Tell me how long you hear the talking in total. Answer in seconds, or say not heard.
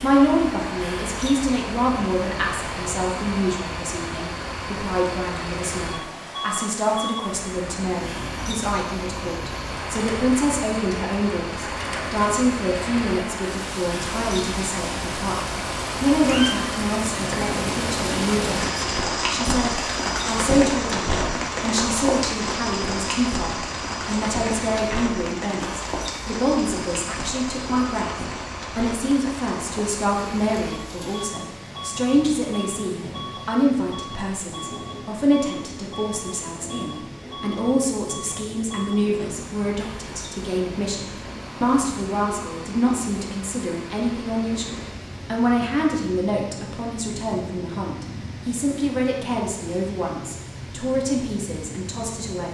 52 s.